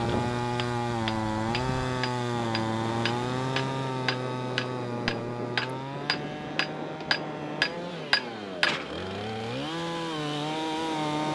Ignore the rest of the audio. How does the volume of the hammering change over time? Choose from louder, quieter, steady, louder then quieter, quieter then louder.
louder.